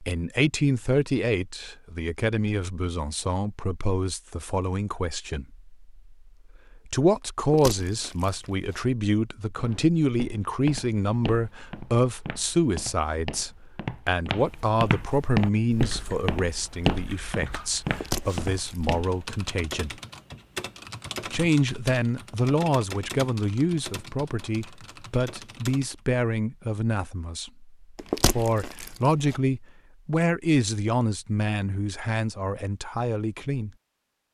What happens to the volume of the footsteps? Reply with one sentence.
The loudness of the footsteps goes up, then down.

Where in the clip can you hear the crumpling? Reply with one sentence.
You can hear the crumpling from 7.4 to 8.8 s, from 17.9 to 18.9 s and from 27.9 to 29.4 s.